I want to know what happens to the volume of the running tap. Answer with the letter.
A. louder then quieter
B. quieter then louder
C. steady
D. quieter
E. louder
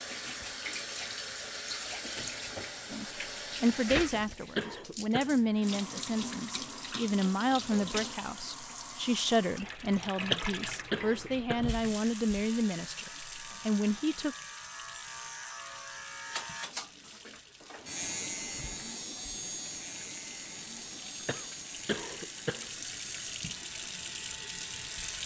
B.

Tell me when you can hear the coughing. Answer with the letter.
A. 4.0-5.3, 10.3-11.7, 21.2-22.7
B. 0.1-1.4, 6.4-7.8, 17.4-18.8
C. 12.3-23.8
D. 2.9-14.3
A.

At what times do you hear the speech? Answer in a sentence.
You can hear the speech from 2.9 to 14.3 s.